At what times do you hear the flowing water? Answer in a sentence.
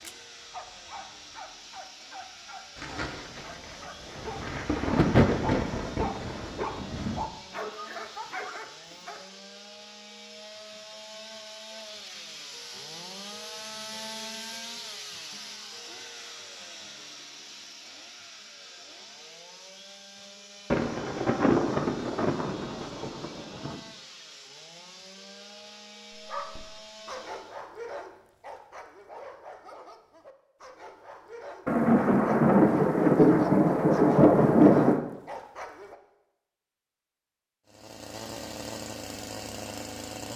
You can't hear the flowing water here.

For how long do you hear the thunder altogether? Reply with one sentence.
The thunder can be heard for 11 seconds in total.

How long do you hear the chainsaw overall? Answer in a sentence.
You can hear the chainsaw for 30 seconds altogether.